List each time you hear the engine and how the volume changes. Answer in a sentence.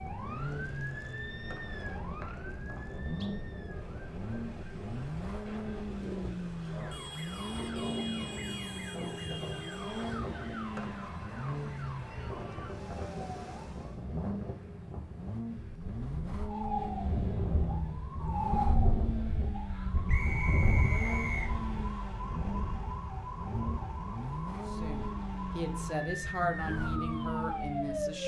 You can hear the engine from 0.0 to 28.2 s, at a steady volume.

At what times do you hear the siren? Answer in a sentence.
The siren can be heard from 0.0 to 14.1 s and from 16.4 to 28.2 s.